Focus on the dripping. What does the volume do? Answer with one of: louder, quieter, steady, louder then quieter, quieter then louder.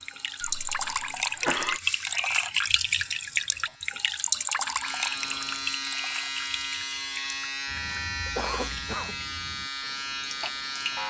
quieter.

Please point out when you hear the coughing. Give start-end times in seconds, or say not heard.
0.4-1.8, 7.8-9.2.